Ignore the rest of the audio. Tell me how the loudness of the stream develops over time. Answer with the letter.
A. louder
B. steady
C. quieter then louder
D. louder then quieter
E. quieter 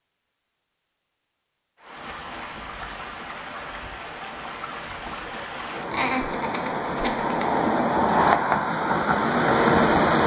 A.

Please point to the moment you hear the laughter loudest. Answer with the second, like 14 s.
6 s.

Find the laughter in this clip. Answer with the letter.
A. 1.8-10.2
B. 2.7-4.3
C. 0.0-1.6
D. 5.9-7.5
D.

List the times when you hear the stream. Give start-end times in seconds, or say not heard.
1.8-10.2.